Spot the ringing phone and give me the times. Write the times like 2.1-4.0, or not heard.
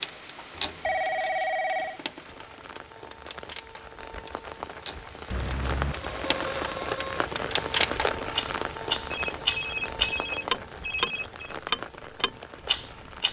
0.7-2.0, 5.3-7.0, 9.1-11.6.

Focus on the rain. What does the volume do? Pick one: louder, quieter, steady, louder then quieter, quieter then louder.
louder then quieter.